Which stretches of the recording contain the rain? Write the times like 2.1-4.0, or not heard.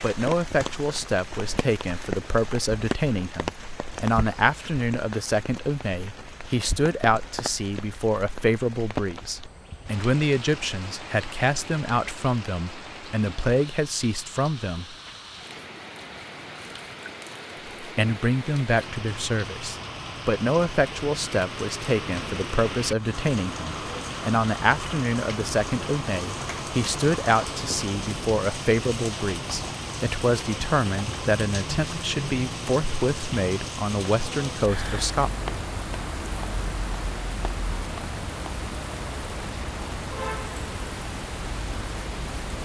0.0-42.6.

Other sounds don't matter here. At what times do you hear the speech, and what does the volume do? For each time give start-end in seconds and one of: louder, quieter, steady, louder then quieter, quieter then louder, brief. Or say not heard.
0.0-14.9 steady
17.8-35.3 steady.